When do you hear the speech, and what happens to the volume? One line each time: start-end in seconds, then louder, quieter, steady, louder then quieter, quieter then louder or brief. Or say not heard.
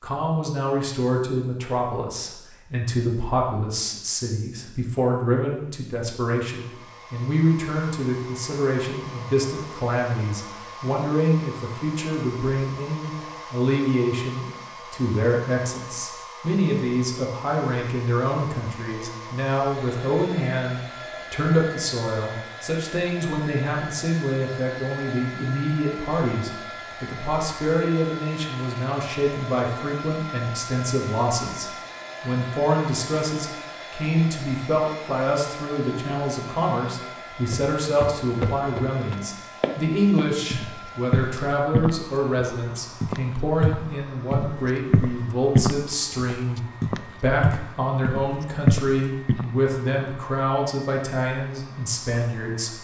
0.0-52.7 steady.